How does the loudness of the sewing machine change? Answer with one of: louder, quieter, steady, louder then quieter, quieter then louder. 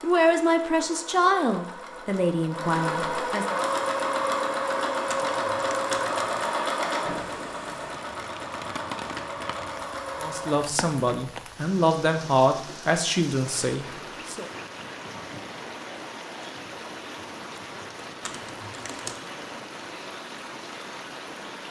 louder then quieter.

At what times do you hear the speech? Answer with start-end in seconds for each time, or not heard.
0.0-3.5, 10.2-14.4.